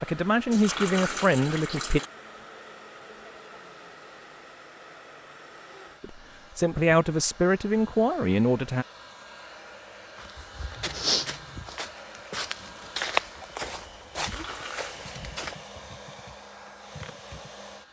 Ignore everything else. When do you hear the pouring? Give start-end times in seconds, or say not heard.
0.5-2.1, 14.2-15.0.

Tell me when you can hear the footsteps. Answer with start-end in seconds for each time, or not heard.
10.2-15.6.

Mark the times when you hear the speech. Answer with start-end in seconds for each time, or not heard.
0.0-2.0, 6.0-8.8.